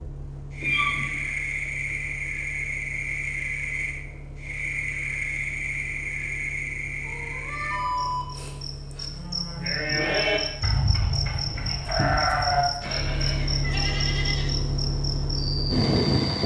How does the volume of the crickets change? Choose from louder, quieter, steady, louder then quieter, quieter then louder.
steady.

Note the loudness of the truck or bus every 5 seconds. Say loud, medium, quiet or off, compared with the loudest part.
quiet, quiet, medium, loud.